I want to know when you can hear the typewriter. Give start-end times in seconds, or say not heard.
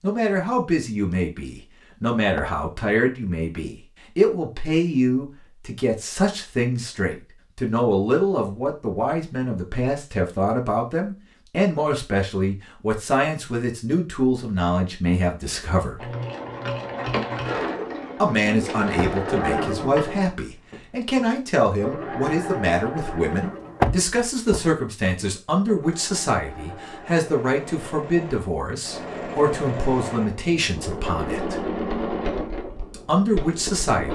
not heard.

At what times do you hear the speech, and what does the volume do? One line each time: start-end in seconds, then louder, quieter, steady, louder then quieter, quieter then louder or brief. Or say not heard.
0.0-16.1 steady
18.2-31.6 steady
32.9-34.1 brief.